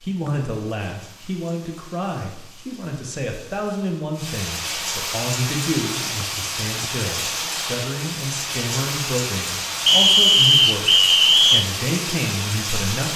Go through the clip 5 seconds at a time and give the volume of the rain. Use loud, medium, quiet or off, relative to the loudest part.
medium, loud, loud.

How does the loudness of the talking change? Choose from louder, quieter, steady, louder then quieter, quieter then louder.
steady.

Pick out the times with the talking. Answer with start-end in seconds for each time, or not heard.
0.0-13.1.